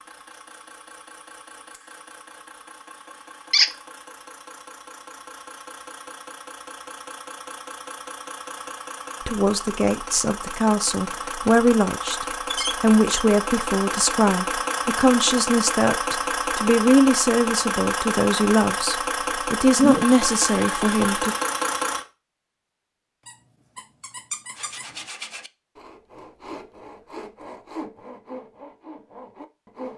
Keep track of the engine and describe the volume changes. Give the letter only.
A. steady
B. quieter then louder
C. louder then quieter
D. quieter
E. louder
E.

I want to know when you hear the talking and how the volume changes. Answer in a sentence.
The talking can be heard from 9.2 to 21.4 s, at a steady volume.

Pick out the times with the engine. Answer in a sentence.
You can hear the engine from 0.0 to 22.1 s.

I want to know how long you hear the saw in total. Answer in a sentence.
The saw can be heard for 5 seconds in total.